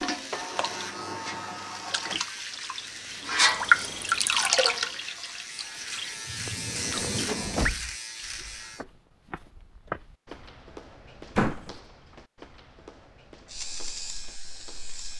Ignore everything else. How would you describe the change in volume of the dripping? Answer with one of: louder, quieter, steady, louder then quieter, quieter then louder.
louder then quieter.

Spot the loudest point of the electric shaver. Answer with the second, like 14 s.
7 s.